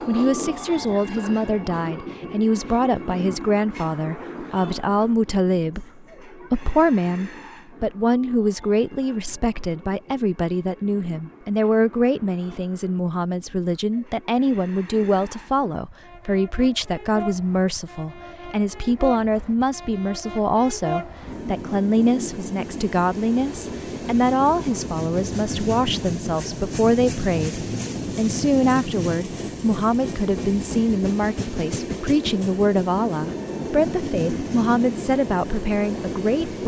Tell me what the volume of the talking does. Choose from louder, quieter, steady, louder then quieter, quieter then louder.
steady.